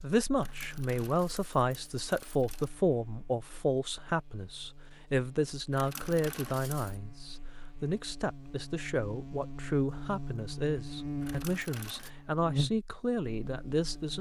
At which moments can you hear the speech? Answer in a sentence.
You can hear the speech from 0.0 to 14.1 s.